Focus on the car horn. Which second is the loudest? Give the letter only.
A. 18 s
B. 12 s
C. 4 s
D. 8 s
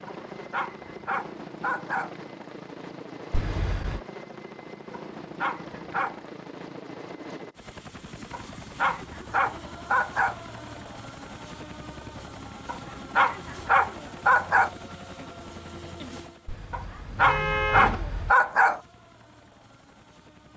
A.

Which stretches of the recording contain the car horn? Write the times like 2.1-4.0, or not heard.
3.3-4.0, 16.4-18.4.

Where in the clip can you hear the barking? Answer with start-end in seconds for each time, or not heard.
0.1-2.1, 4.9-6.2, 8.3-10.3, 12.7-14.7, 16.7-18.8.